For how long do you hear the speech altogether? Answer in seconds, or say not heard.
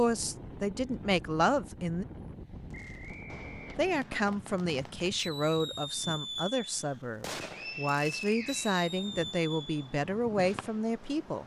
10 s.